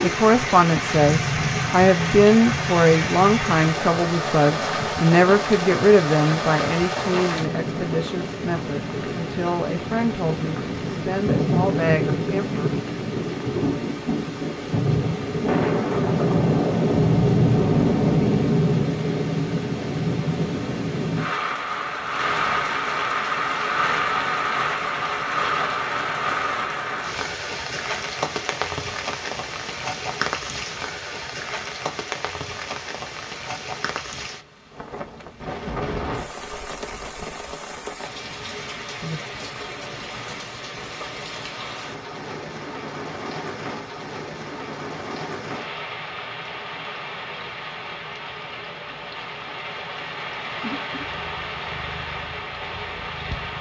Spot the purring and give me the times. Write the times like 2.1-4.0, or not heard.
50.6-53.5.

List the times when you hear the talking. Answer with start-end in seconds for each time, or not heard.
0.0-12.7.